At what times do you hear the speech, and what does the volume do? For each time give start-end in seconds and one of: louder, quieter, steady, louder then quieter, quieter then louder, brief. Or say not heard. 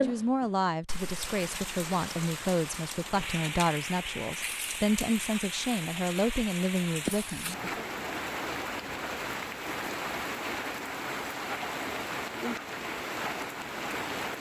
0.0-7.8 steady.